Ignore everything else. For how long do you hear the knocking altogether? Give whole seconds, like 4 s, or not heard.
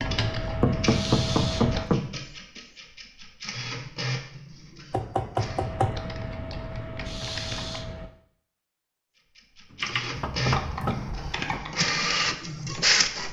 4 s.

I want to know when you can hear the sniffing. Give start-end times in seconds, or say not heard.
0.8-1.6, 7.0-7.8.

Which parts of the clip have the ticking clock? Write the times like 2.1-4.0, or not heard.
not heard.